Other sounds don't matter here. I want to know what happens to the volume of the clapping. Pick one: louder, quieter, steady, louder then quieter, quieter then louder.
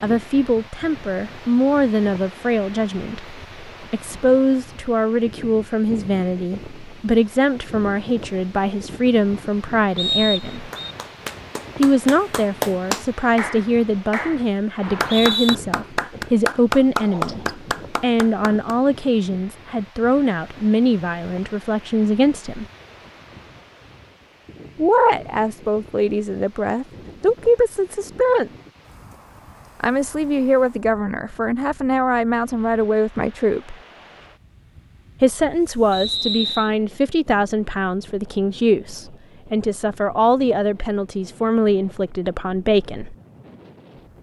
louder.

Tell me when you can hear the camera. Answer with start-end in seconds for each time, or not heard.
not heard.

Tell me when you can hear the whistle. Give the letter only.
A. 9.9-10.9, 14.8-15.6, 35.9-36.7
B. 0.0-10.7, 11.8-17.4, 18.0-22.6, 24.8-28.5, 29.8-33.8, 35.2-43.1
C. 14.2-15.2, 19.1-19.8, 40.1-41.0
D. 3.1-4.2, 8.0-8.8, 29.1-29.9
A.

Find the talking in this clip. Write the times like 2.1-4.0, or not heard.
0.0-10.7, 11.8-17.4, 18.0-22.6, 24.8-28.5, 29.8-33.8, 35.2-43.1.